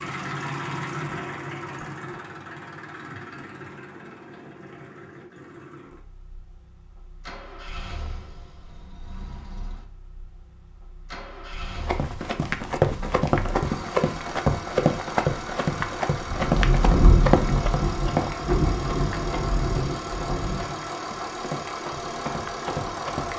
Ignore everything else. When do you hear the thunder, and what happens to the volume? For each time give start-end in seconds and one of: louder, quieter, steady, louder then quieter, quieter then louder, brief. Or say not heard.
16.2-20.7 quieter.